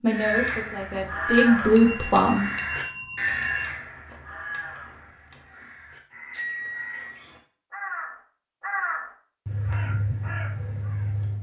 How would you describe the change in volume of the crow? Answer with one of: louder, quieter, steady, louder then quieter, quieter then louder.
quieter then louder.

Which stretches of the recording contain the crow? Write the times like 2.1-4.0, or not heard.
0.1-11.3.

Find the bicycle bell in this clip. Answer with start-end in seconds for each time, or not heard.
1.8-3.6, 6.3-7.2.